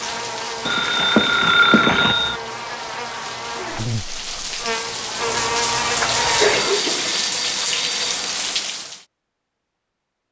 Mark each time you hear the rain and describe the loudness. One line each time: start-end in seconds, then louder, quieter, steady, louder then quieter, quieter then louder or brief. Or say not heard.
0.0-9.1 louder.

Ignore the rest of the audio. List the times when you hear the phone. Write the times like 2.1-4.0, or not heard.
0.7-2.4, 6.2-8.3.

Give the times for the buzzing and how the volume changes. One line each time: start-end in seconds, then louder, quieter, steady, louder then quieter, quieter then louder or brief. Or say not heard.
0.0-6.8 louder.